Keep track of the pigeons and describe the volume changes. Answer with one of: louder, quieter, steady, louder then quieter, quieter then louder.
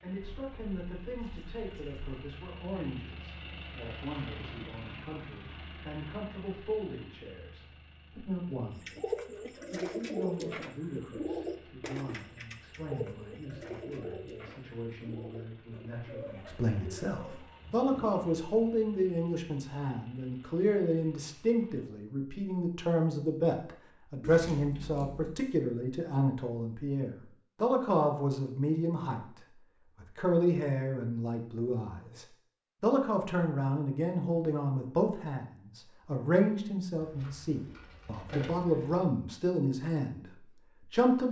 quieter.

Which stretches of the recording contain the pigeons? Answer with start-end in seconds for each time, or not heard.
8.8-18.2.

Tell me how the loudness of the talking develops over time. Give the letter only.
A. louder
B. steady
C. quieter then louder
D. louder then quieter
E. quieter
A.